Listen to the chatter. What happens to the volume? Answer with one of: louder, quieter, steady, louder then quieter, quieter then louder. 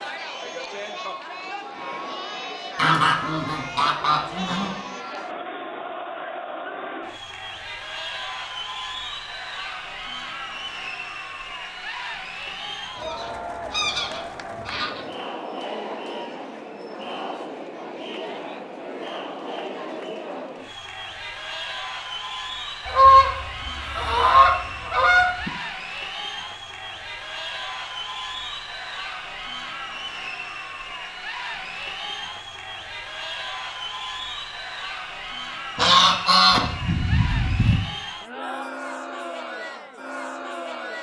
steady.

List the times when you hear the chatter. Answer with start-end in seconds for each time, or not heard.
0.0-40.9.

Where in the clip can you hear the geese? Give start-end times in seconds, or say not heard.
2.8-4.9, 12.5-15.1, 22.9-25.5, 35.8-37.8.